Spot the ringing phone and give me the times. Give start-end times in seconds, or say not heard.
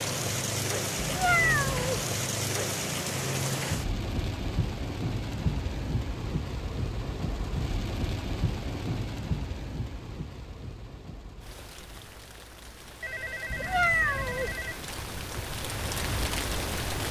13.0-14.8.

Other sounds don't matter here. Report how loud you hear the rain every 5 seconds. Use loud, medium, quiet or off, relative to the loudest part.
loud, loud, quiet, loud.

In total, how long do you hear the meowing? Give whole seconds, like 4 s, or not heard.
2 s.